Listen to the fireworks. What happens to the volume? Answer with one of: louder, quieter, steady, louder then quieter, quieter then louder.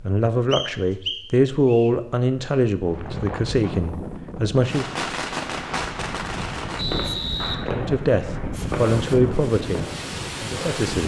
quieter.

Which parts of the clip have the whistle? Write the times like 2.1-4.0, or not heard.
0.5-1.9, 6.8-7.5.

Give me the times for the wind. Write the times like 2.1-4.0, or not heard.
2.9-11.0.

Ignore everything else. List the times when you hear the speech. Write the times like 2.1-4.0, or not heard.
0.0-4.8, 7.7-11.0.